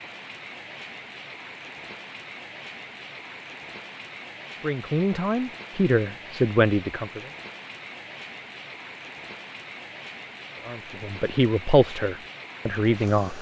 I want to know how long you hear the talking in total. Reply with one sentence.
You can hear the talking for 5 seconds altogether.